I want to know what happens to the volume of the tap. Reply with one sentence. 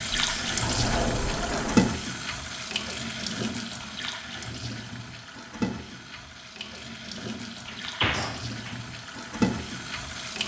The volume of the tap goes down, then up.